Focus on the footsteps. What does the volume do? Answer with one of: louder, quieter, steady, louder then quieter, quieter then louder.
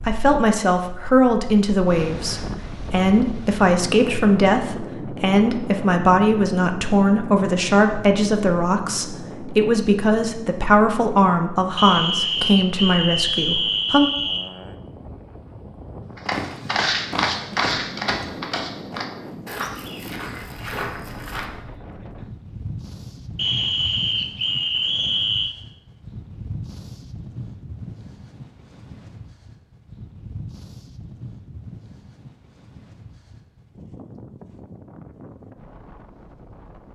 quieter.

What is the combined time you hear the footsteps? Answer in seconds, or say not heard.
5 s.